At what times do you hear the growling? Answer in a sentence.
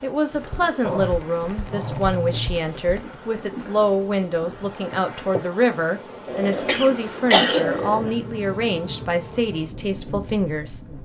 You can hear the growling from 0.8 to 2.5 s and from 6.2 to 8.2 s.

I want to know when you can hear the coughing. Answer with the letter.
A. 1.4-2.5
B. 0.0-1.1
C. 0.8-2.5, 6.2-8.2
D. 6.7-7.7
D.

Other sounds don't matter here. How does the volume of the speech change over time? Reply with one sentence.
The volume of the speech stays about the same.